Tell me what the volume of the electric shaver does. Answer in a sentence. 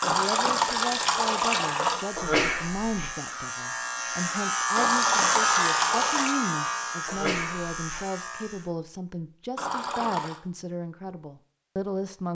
The volume of the electric shaver goes up, then down.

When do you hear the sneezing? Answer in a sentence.
You can hear the sneezing from 2.1 to 3.1 s and from 7.0 to 8.0 s.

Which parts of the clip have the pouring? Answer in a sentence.
You can hear the pouring from 0.0 to 2.1 s, from 4.8 to 6.4 s and from 9.6 to 10.4 s.